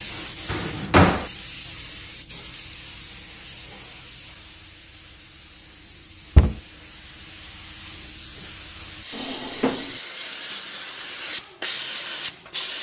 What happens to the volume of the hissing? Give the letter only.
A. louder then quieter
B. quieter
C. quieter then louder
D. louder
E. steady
C.